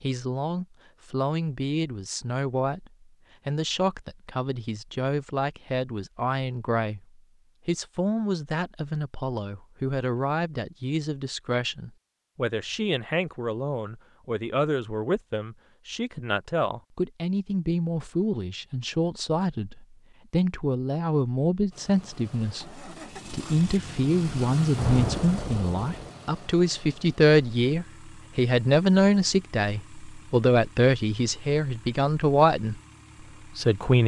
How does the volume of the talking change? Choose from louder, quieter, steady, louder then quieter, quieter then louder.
louder.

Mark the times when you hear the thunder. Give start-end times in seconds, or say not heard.
24.8-26.1.